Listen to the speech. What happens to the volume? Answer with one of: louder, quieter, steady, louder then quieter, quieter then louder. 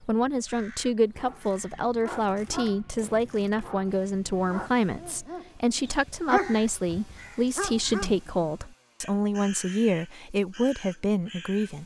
steady.